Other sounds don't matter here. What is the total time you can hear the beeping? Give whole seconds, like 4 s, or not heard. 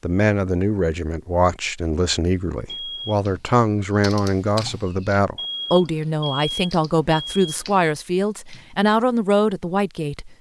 3 s.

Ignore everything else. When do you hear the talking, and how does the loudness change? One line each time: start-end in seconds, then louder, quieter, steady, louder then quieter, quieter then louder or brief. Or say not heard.
0.0-10.3 steady.